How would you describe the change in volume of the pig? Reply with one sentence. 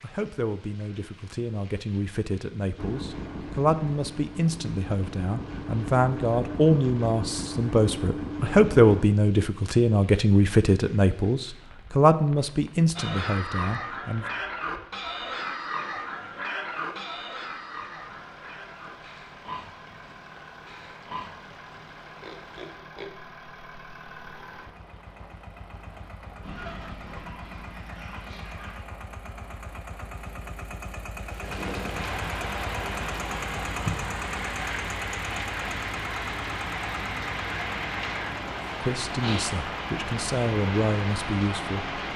The loudness of the pig goes down.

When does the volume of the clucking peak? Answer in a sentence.
The volume of the clucking peaks at 27 seconds.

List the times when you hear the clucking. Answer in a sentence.
The clucking can be heard from 26.4 to 28.9 s.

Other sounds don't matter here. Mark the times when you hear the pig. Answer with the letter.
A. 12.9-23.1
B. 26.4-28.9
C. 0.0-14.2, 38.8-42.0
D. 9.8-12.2
A.